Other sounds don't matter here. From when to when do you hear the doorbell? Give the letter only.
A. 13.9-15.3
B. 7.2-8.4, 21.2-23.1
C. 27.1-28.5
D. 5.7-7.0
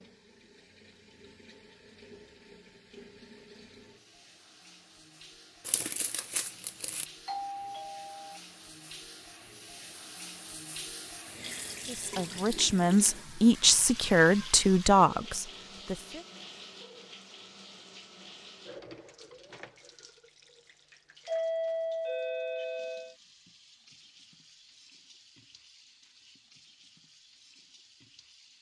B.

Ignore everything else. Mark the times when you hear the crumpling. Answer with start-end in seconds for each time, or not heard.
5.7-7.0.